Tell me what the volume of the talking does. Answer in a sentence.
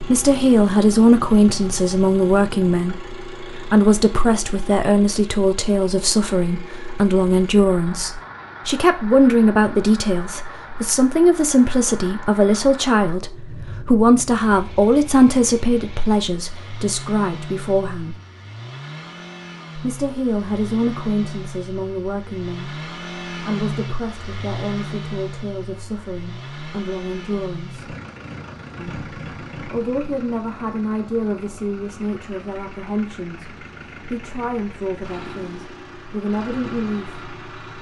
The loudness of the talking goes down.